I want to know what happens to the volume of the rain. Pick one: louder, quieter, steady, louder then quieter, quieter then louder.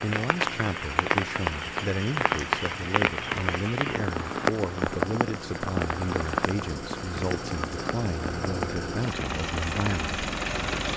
quieter.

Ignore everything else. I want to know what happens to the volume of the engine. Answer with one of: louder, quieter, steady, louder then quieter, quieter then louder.
louder.